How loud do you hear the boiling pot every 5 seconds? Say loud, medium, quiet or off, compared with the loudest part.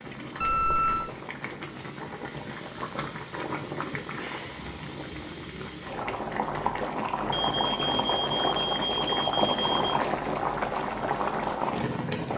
medium, loud, loud.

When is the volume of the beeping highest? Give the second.
1 s.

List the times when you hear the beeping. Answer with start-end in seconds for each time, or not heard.
0.4-1.1, 7.3-10.0.